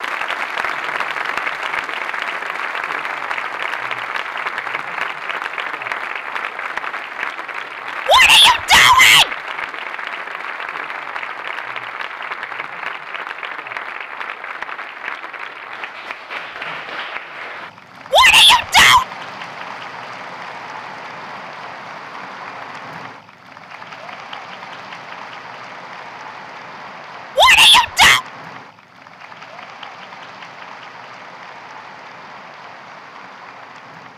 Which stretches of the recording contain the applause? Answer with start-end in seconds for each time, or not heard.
0.0-34.1.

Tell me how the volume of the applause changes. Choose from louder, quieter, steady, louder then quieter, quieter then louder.
quieter.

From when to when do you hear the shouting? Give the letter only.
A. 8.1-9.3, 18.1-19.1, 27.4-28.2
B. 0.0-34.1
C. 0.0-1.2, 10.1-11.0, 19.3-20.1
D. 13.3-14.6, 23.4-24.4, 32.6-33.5
A.